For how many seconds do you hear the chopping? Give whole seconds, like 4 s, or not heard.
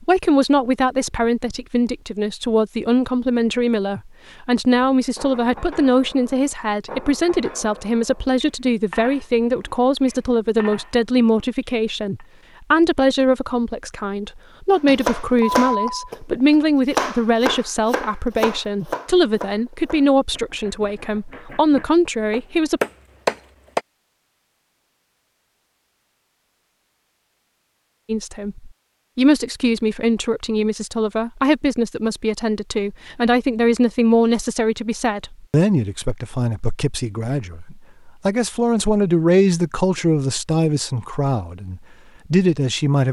9 s.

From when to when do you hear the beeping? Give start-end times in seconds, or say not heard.
14.8-16.1.